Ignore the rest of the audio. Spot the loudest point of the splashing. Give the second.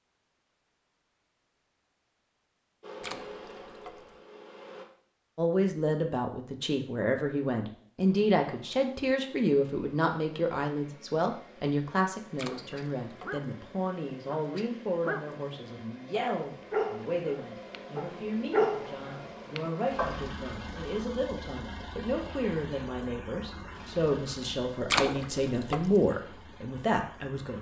25 s.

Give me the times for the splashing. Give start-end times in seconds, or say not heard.
3.0-4.2, 12.3-13.4, 24.9-26.0.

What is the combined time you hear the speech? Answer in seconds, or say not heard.
22 s.